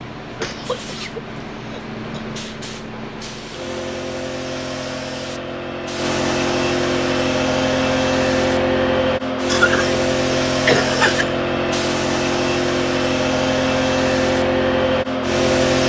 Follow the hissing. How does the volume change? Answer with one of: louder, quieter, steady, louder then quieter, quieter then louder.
louder.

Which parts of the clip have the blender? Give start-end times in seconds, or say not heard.
not heard.